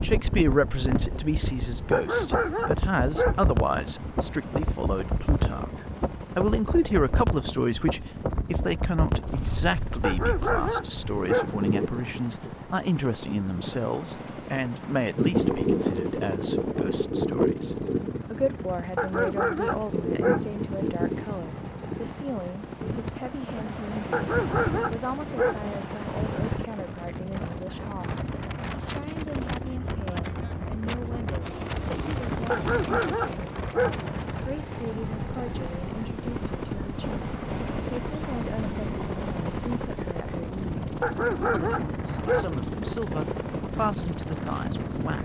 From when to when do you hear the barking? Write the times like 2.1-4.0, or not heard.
1.9-3.5, 10.0-11.6, 18.9-20.5, 24.1-25.6, 32.5-34.0, 41.0-42.5.